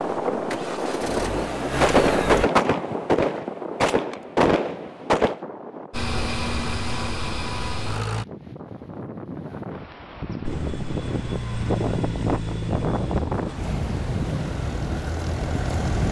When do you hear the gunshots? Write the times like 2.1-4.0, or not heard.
1.8-5.4.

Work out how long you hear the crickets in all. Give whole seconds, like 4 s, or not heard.
not heard.